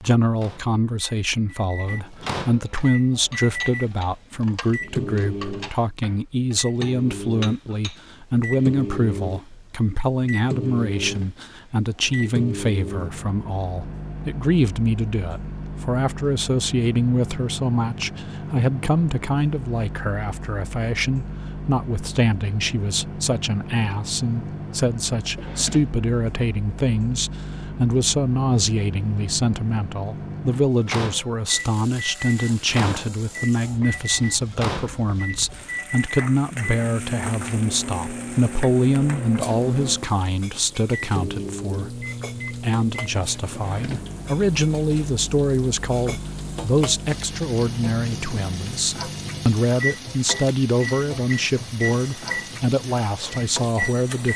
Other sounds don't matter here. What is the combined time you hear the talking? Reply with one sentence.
You can hear the talking for 54 seconds altogether.